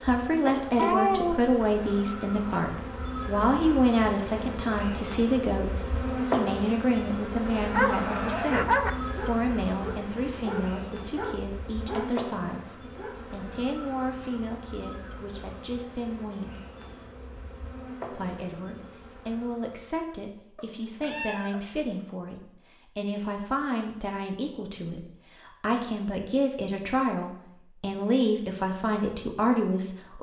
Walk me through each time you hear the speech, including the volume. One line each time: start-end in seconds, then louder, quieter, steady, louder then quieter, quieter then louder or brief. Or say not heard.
0.0-16.6 quieter
18.1-30.1 louder.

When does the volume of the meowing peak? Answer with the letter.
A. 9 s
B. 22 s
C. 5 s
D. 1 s
D.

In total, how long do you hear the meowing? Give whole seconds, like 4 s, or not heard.
2 s.